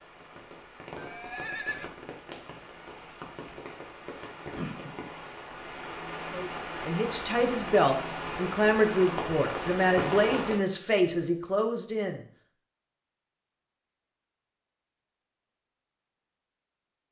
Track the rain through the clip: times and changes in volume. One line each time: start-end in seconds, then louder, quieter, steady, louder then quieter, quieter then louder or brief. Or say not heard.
0.0-10.6 louder.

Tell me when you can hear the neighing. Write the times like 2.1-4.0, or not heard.
0.9-1.9.